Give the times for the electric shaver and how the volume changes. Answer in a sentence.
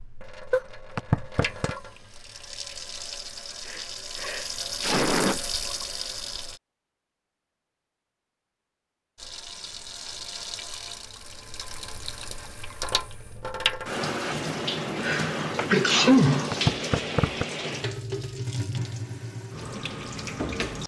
The electric shaver can't be heard in this clip.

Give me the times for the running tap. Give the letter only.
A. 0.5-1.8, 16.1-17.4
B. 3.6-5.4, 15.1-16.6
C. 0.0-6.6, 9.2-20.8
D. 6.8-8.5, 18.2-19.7
C.